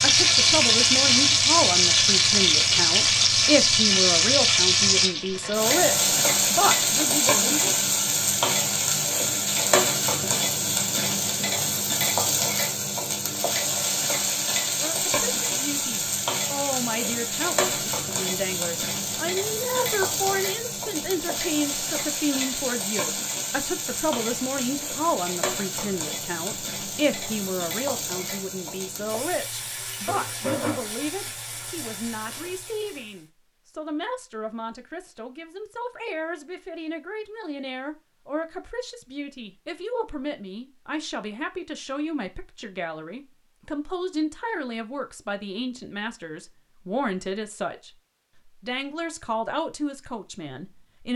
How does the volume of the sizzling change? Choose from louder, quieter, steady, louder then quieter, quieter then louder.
quieter.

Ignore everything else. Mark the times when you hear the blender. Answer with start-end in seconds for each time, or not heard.
not heard.